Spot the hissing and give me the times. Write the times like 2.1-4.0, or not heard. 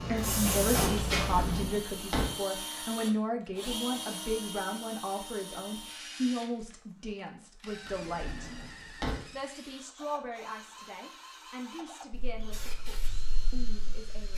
0.0-1.6, 12.1-14.3.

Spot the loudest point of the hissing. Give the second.
1 s.